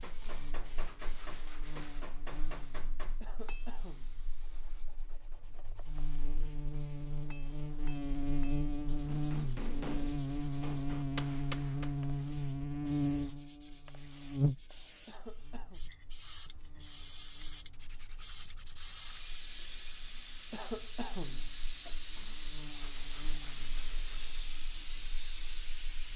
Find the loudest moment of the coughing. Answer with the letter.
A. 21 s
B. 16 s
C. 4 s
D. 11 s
A.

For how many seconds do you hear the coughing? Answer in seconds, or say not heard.
3 s.